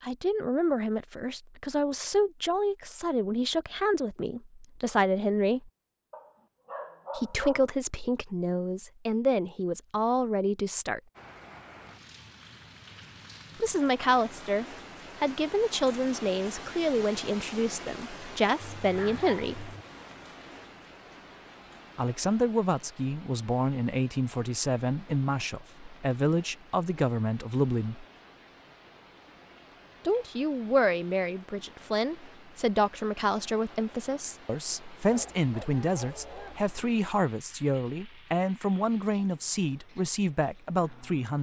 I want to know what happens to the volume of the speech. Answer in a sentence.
The volume of the speech stays about the same.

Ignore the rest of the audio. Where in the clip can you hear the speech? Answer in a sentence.
You can hear the speech from 0.0 to 5.7 s, from 7.2 to 11.0 s, from 13.6 to 19.7 s, from 21.9 to 28.1 s and from 30.1 to 41.3 s.